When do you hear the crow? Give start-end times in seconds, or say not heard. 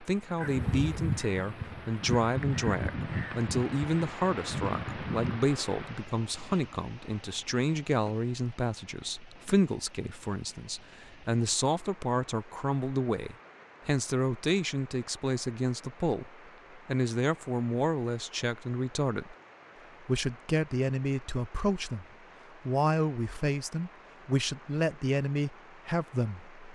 0.4-5.5.